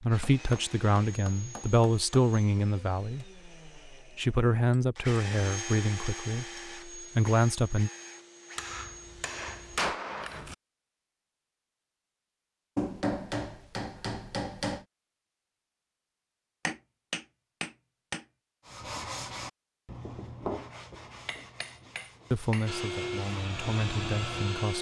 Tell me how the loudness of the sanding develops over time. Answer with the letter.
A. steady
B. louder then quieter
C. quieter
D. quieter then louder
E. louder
D.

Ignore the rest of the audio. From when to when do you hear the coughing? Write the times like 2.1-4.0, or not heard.
not heard.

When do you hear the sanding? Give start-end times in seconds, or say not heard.
18.6-24.6.